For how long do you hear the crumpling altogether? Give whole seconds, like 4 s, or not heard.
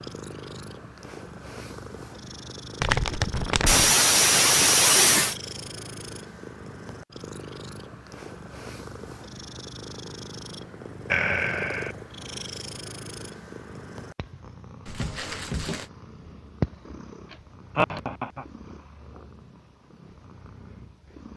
2 s.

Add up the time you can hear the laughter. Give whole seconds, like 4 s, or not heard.
3 s.